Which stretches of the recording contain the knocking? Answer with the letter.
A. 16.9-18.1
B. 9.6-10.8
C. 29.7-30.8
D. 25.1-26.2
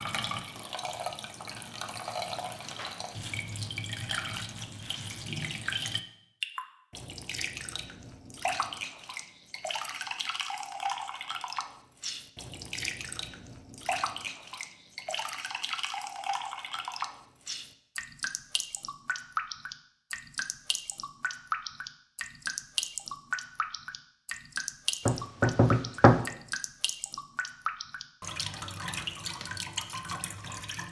D.